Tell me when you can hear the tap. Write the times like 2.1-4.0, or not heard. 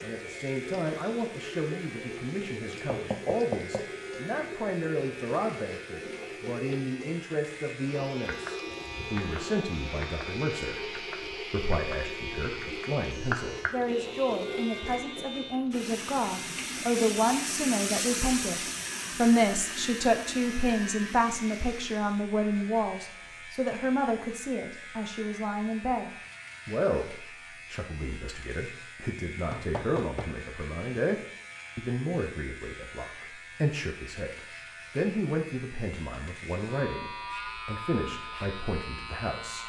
0.0-22.2.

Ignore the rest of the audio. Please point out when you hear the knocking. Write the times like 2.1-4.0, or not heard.
2.9-3.9, 29.5-30.4.